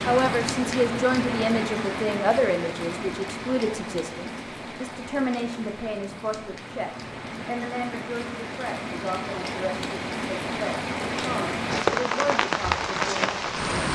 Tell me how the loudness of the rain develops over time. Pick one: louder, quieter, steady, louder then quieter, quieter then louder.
quieter then louder.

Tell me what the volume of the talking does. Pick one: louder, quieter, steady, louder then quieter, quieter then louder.
quieter.